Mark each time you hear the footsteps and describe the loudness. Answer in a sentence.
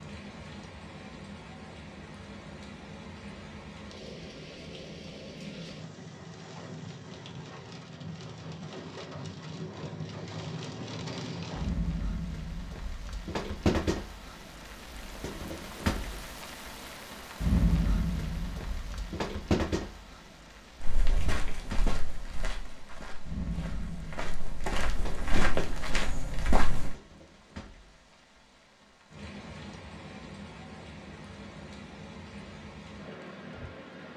The footsteps can be heard from 20.8 to 26.9 s, getting quieter then louder.